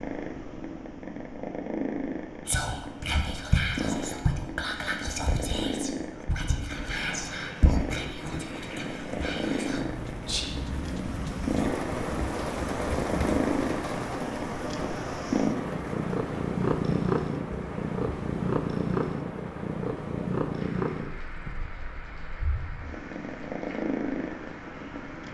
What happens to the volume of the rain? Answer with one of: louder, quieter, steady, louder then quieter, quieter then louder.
louder then quieter.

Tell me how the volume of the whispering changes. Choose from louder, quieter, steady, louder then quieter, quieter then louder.
quieter.